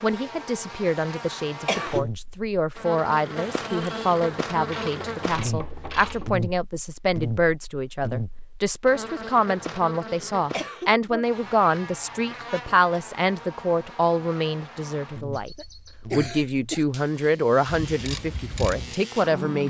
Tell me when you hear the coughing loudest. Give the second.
2 s.